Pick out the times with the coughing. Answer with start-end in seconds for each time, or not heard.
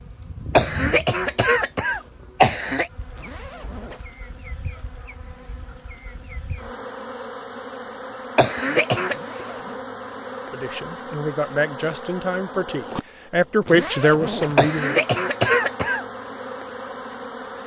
0.6-2.9, 8.3-9.2, 14.6-16.1.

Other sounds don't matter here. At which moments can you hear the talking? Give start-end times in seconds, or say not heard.
10.5-15.1.